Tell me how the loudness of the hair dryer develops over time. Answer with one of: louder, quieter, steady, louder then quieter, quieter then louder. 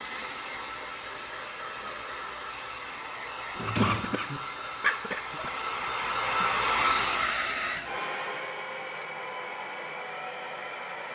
louder then quieter.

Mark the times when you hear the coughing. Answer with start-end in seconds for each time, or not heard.
3.6-5.5.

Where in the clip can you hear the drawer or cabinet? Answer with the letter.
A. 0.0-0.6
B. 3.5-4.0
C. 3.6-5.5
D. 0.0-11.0
B.